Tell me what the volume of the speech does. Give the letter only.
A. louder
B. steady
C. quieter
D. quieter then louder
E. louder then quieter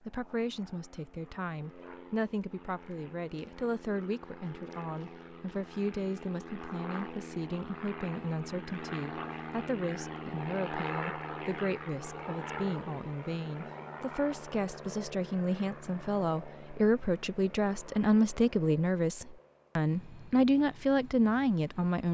A.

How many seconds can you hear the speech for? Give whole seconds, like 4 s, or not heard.
22 s.